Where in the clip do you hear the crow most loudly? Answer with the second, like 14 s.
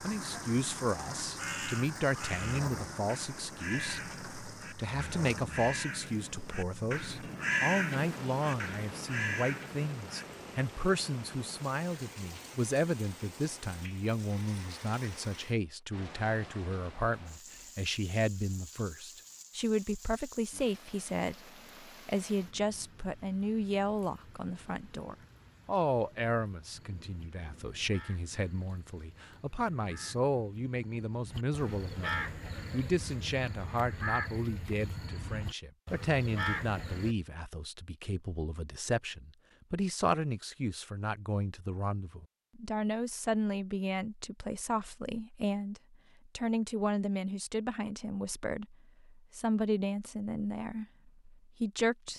8 s.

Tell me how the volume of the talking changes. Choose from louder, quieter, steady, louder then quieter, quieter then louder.
steady.